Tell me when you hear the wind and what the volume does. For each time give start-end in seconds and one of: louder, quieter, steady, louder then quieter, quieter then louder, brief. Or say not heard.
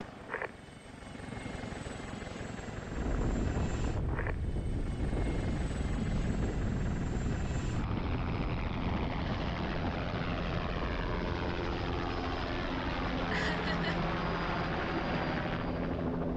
2.8-16.1 quieter.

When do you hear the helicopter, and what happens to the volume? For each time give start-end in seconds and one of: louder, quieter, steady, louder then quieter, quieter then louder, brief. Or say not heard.
0.0-16.3 louder.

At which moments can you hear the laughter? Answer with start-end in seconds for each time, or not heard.
13.2-13.9.